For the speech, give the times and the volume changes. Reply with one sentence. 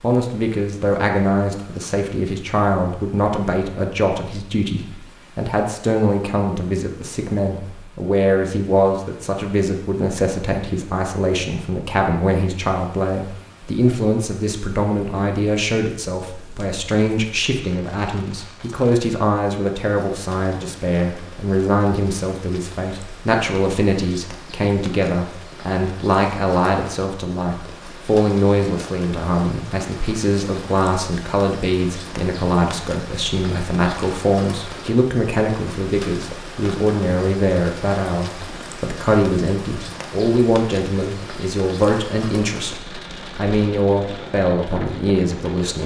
The speech can be heard from 0.0 to 45.8 s, at a steady volume.